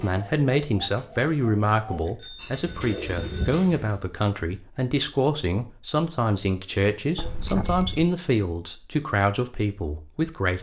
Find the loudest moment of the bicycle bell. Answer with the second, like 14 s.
8 s.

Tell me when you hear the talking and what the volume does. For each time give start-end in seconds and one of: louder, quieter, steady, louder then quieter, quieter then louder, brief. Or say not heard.
0.0-10.5 steady.